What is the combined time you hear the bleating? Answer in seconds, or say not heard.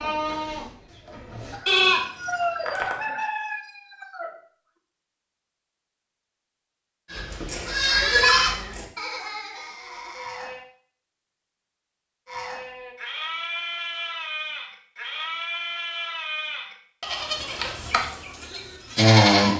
14 s.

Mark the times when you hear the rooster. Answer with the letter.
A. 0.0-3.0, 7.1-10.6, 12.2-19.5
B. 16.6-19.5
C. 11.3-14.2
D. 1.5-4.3
D.